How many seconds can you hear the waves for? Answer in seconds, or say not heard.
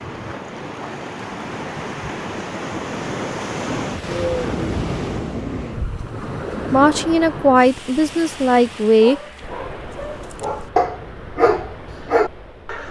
13 s.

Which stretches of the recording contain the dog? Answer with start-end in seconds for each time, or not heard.
8.9-12.8.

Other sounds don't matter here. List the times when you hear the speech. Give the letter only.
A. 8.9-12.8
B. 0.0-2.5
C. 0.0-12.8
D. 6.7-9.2
D.